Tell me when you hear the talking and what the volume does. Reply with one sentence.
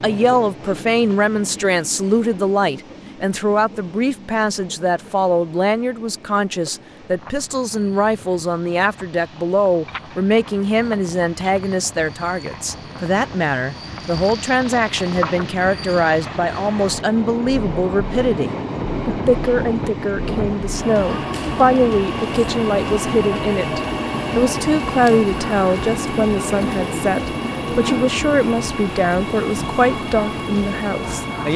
The talking can be heard from 0.0 to 31.5 s, at a steady volume.